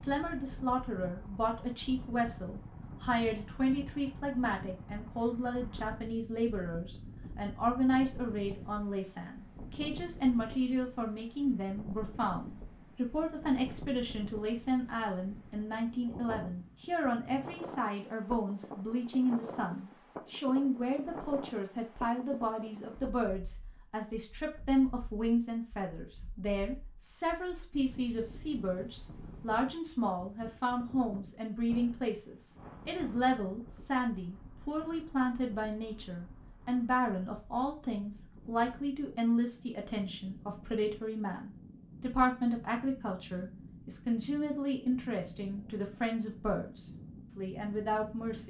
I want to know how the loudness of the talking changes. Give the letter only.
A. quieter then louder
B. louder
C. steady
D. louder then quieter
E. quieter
C.